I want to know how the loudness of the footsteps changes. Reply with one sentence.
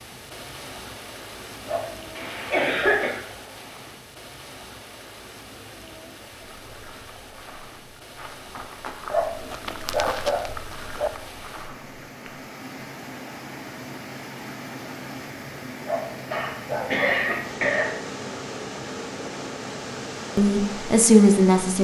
The loudness of the footsteps goes up, then down.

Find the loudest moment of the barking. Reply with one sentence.
The loudest moment of the barking is at 10 seconds.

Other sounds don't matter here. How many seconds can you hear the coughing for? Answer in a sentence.
The coughing can be heard for 3 seconds in total.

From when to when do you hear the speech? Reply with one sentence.
You can hear the speech from 20.4 to 21.7 s.